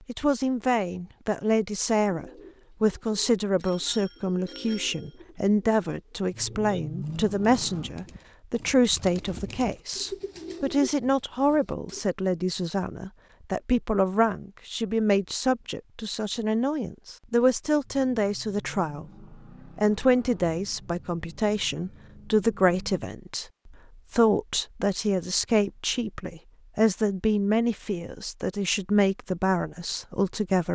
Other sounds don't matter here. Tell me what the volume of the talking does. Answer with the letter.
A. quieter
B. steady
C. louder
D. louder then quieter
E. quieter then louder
B.